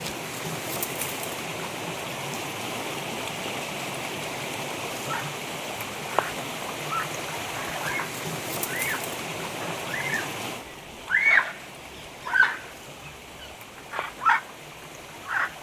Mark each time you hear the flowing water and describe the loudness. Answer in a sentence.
You can hear the flowing water from 0.0 to 15.5 s, getting quieter.